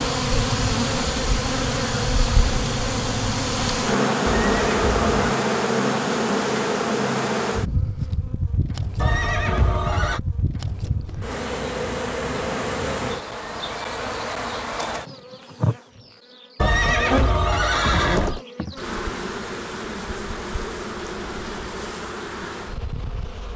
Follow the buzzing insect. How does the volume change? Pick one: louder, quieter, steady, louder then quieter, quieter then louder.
quieter.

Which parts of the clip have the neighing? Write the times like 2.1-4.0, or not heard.
4.2-5.3, 8.9-10.2, 16.6-18.4.